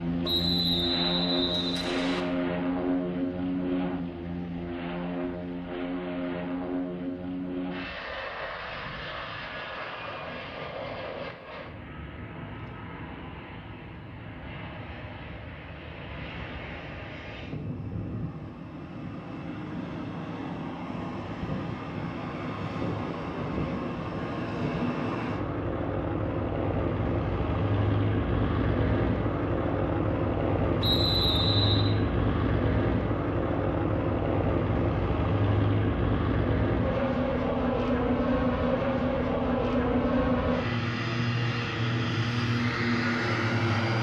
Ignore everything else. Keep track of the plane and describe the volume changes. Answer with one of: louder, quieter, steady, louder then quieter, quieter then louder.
quieter then louder.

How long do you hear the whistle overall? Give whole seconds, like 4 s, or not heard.
3 s.